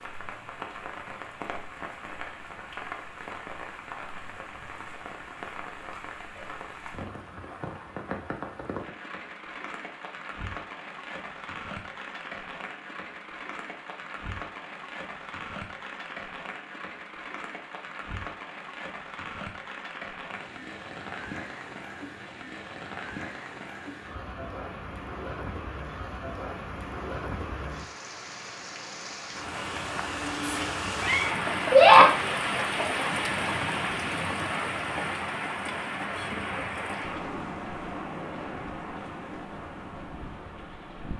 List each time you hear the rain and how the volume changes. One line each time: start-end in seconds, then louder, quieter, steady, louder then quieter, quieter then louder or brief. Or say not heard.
0.0-41.1 louder.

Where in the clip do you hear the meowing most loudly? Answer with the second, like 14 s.
32 s.